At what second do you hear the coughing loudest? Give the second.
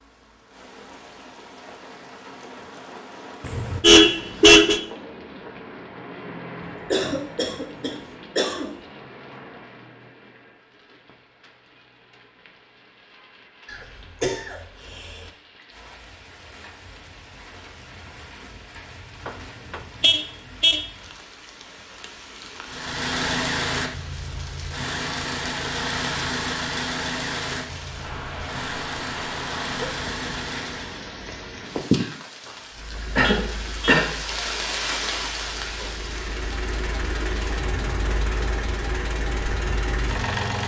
34 s.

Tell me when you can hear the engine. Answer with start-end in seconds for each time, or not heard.
22.6-31.1, 32.7-40.6.